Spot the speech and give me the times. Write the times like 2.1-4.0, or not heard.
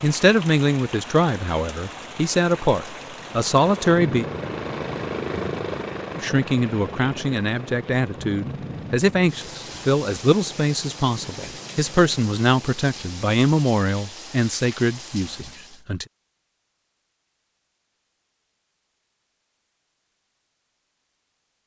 0.0-4.2, 6.2-16.1.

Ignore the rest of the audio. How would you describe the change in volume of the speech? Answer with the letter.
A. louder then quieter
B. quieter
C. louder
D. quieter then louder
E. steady
E.